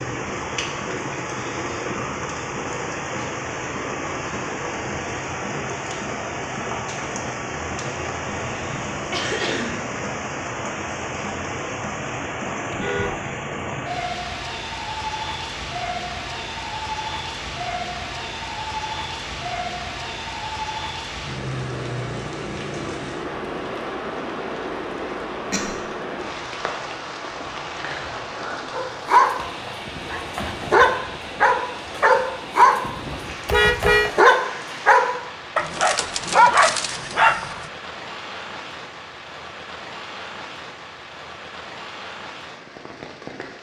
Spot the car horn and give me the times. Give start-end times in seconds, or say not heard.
12.7-13.2, 33.5-34.1.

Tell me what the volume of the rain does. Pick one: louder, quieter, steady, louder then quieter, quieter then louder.
quieter.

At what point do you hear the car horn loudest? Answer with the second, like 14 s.
34 s.